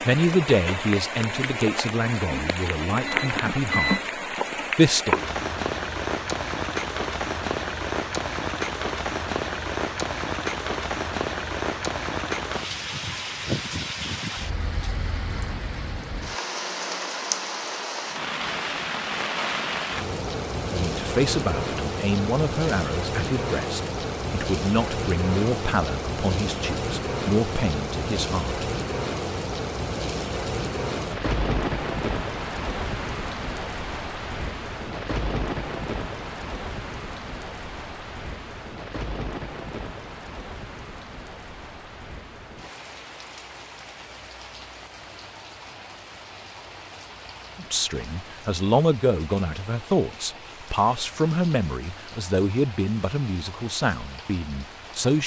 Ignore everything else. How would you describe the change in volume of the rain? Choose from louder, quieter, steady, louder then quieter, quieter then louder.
quieter.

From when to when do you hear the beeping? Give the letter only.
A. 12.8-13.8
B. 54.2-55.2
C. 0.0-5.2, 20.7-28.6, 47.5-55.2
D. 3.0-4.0
D.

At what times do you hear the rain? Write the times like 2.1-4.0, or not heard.
0.0-55.2.